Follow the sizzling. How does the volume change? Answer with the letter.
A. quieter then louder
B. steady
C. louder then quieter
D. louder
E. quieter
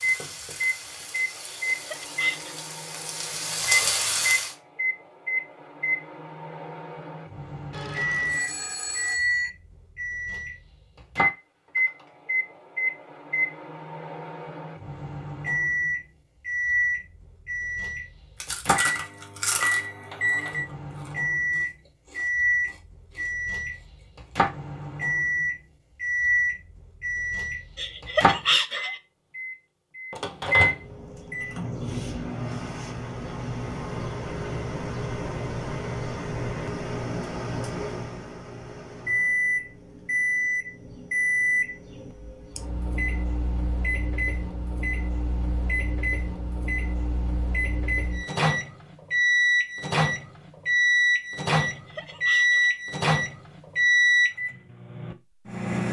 D.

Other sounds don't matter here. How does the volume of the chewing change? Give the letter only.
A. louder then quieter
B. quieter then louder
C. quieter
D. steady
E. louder
C.